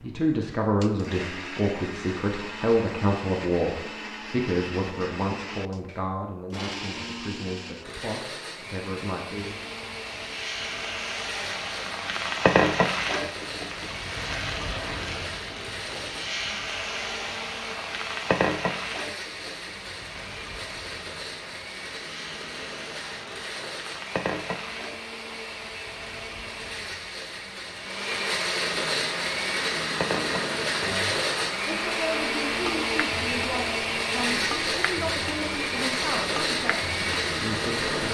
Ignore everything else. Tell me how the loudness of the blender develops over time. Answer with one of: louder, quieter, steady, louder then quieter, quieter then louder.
louder.